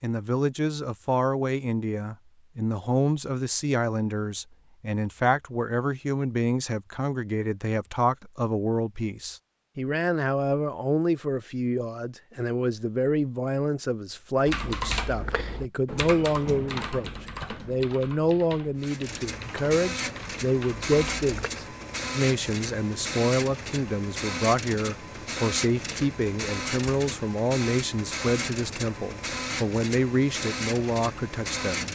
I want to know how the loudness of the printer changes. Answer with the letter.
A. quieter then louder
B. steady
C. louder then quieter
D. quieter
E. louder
B.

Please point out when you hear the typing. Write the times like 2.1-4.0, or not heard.
14.4-21.5.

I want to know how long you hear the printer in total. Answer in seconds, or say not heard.
13 s.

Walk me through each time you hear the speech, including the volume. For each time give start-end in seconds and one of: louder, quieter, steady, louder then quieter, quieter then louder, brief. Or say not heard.
0.0-31.8 steady.